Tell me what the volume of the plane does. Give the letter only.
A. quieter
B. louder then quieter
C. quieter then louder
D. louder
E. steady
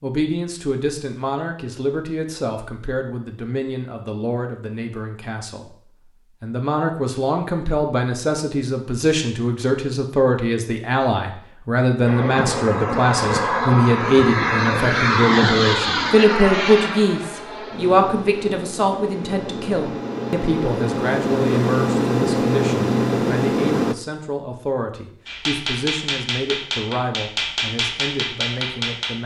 C.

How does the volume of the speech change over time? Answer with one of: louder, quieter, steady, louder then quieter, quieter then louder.
louder then quieter.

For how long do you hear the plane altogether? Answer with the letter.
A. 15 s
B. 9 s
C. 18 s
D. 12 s
D.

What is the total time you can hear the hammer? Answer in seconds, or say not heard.
4 s.